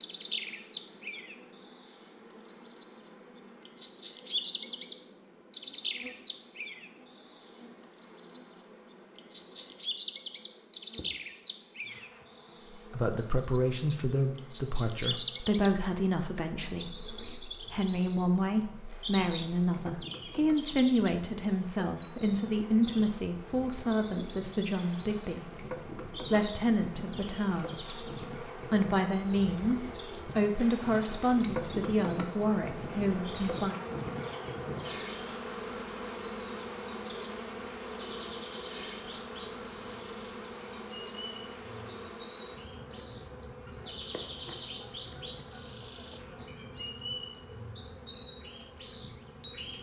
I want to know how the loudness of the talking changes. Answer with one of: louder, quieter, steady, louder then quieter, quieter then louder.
steady.